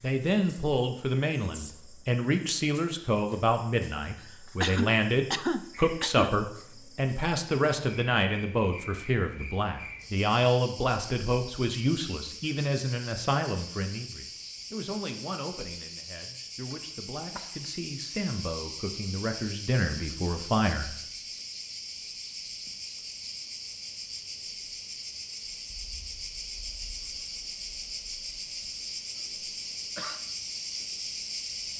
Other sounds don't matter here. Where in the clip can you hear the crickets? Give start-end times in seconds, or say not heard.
0.0-31.7.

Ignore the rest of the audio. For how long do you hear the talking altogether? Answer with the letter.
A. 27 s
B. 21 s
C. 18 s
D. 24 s
B.